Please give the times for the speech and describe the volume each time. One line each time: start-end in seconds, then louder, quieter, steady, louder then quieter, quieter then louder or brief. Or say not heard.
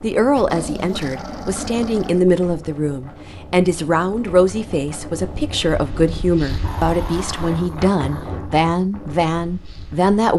0.0-10.3 steady.